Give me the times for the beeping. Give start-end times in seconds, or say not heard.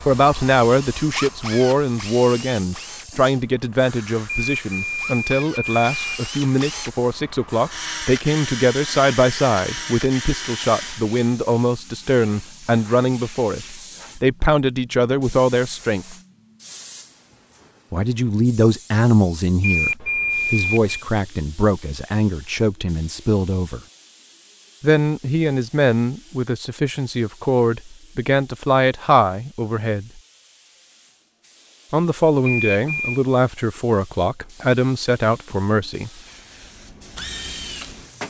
4.2-6.2, 19.6-21.1, 32.5-33.2.